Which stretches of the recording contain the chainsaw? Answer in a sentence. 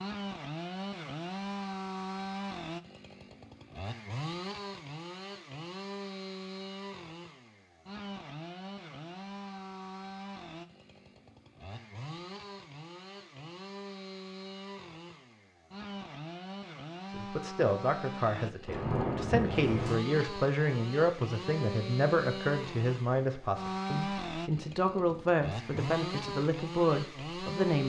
The chainsaw can be heard from 0.0 to 27.8 s.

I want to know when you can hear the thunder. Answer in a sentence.
You can hear the thunder from 18.6 to 19.9 s.